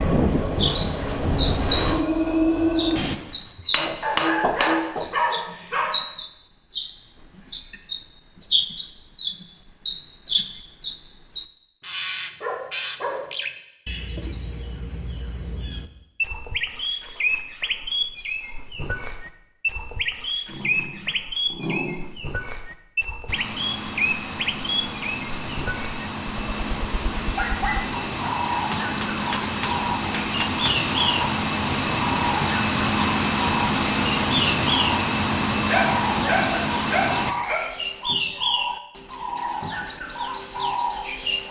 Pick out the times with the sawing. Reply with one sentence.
The sawing can't be heard in this clip.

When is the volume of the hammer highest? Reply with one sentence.
The volume of the hammer peaks at 4 seconds.